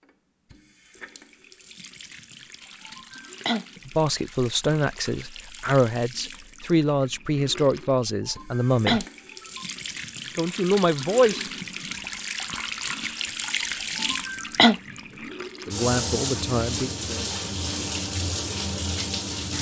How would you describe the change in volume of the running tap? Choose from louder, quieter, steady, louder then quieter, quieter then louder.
louder.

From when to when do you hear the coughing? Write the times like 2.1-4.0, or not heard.
2.9-3.6, 8.2-9.7, 13.8-14.8.